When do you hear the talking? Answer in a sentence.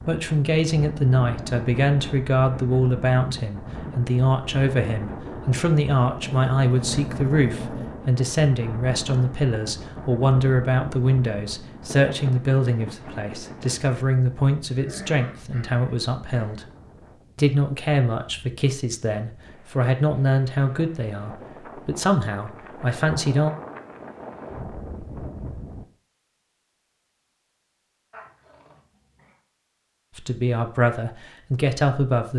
The talking can be heard from 0.1 to 16.6 s, from 17.4 to 23.5 s and from 30.1 to 32.3 s.